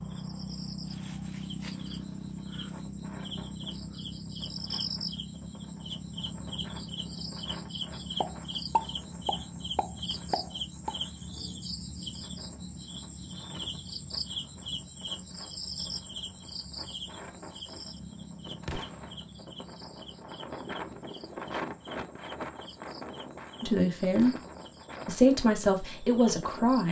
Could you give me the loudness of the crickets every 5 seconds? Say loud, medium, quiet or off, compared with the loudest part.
loud, loud, loud, loud, quiet, quiet.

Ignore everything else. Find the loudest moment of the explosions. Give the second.
9 s.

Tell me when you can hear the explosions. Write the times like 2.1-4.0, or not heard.
8.2-10.9, 18.6-19.1.